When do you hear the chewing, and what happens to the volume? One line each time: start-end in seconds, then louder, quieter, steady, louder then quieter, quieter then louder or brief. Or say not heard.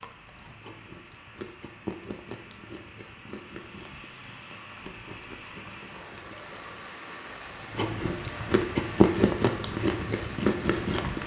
0.0-11.2 quieter then louder.